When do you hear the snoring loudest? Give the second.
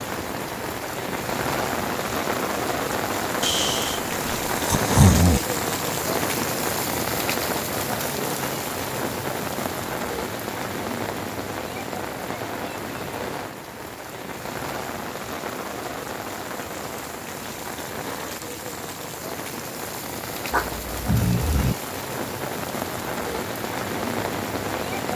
5 s.